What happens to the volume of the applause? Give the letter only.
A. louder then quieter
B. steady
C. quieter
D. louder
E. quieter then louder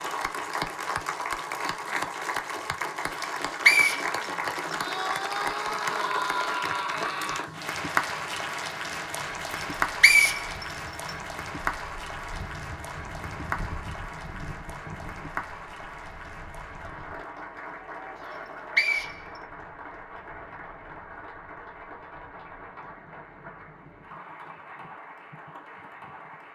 C.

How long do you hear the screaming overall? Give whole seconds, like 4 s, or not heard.
3 s.